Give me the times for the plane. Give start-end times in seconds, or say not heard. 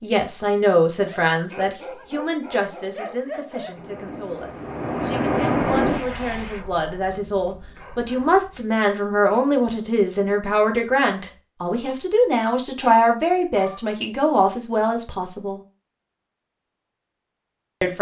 3.7-6.6.